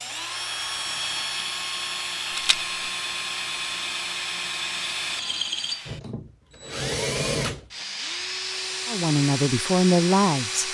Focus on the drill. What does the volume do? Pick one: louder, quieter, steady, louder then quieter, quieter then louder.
steady.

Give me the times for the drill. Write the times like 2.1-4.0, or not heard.
0.0-10.6.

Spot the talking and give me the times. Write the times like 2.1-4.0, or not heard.
8.8-10.6.